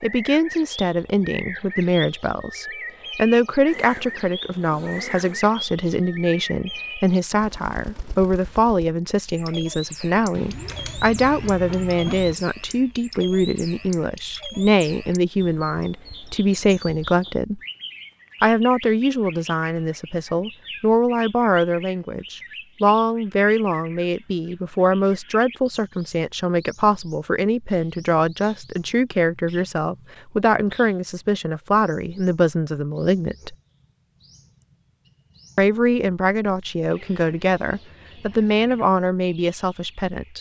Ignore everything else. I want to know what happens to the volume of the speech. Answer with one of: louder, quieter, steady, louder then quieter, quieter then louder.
steady.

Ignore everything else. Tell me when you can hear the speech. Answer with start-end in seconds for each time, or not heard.
0.0-17.6, 18.4-33.5, 35.5-40.3.